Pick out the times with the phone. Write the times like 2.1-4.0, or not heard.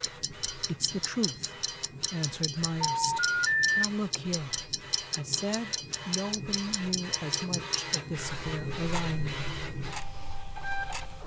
2.8-3.8.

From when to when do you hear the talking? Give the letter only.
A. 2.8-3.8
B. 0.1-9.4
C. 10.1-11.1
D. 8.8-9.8
B.